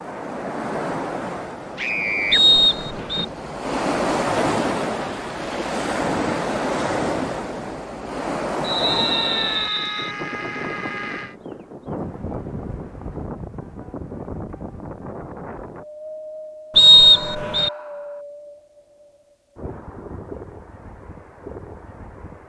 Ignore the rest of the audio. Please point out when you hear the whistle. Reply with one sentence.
The whistle can be heard from 2.3 to 3.2 s, from 8.6 to 10.2 s and from 16.8 to 17.7 s.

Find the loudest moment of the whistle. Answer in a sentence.
The loudest moment of the whistle is at 17 seconds.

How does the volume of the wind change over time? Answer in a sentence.
The loudness of the wind goes down.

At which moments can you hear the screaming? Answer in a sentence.
You can hear the screaming from 1.8 to 2.4 s, from 8.8 to 11.3 s and from 16.9 to 18.2 s.